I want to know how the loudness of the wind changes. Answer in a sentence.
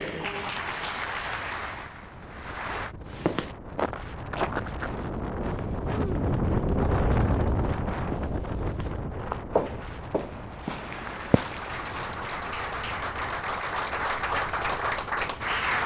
The loudness of the wind goes up, then down.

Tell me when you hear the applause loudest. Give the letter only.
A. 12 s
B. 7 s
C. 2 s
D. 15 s
D.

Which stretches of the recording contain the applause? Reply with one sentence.
You can hear the applause from 0.0 to 3.0 s and from 10.9 to 15.8 s.